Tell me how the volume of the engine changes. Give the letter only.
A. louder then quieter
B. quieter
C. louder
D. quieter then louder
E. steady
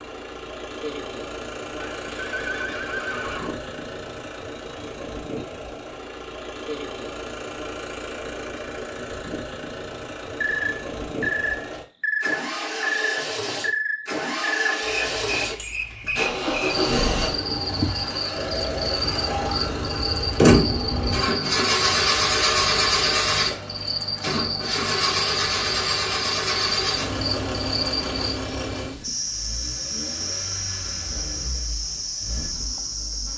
A.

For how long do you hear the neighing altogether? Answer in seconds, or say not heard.
2 s.